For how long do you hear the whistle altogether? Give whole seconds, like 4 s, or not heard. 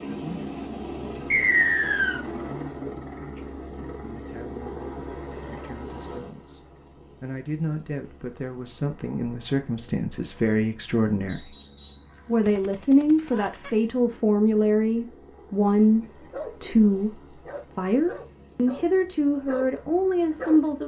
2 s.